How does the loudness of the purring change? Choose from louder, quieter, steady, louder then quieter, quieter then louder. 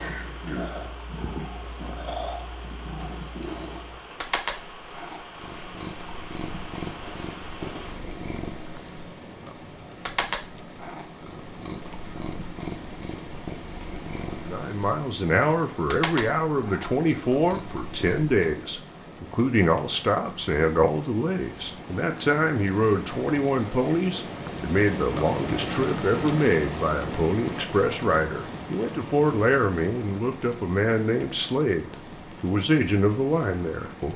steady.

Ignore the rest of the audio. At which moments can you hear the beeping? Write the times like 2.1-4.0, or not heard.
not heard.